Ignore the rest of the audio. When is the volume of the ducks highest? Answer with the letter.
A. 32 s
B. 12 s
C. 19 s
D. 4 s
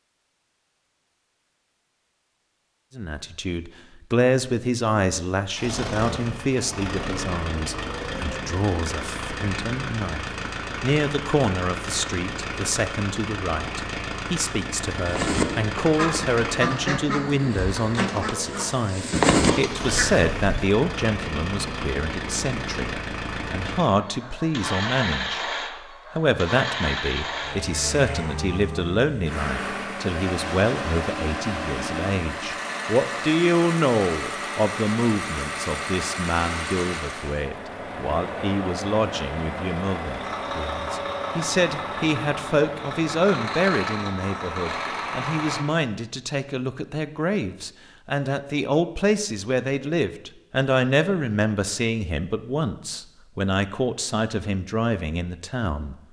C.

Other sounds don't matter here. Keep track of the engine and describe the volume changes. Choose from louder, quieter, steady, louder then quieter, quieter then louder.
steady.